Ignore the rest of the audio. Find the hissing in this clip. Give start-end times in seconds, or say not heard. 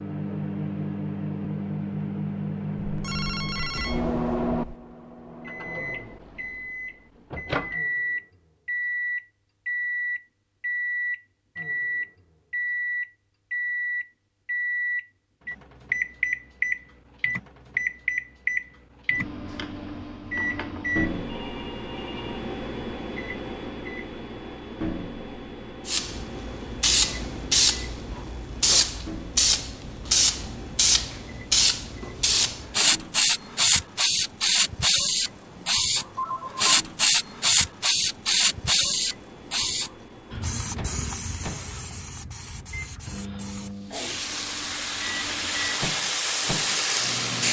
25.9-47.4.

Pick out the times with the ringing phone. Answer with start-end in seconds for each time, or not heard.
2.8-4.8, 21.2-22.4, 35.5-36.6.